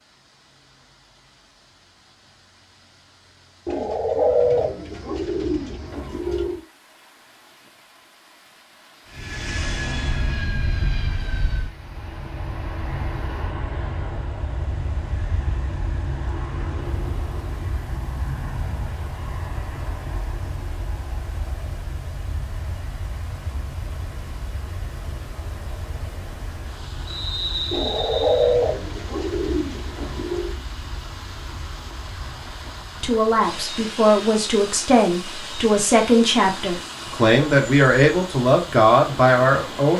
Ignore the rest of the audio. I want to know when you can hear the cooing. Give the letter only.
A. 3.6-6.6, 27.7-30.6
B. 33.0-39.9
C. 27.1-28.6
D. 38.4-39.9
A.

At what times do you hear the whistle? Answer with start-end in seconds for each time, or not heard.
27.1-28.6.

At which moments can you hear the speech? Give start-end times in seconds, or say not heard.
33.0-39.9.